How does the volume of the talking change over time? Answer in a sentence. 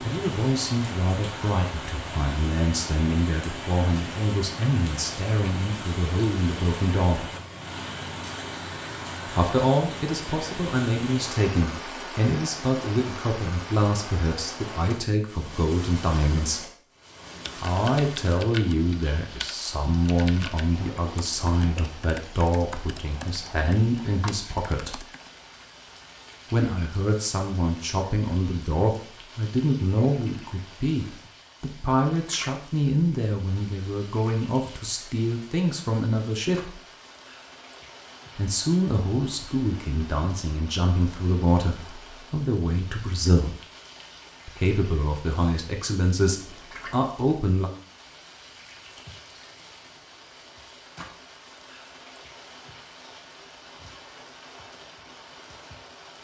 The volume of the talking stays about the same.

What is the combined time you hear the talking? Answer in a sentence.
You can hear the talking for 41 seconds altogether.